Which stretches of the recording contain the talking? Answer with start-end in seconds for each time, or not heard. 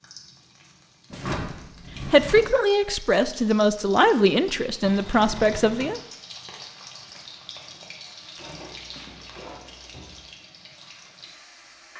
2.0-6.0.